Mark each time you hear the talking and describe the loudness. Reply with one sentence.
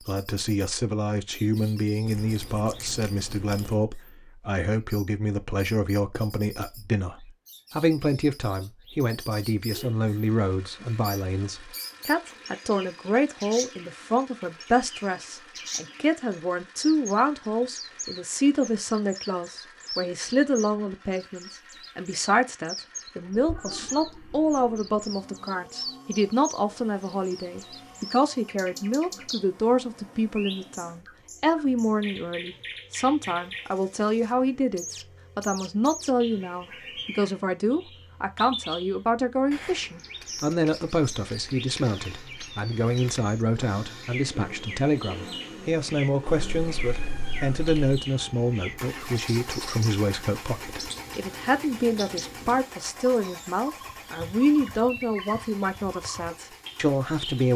You can hear the talking from 0.0 to 57.5 s, at a steady volume.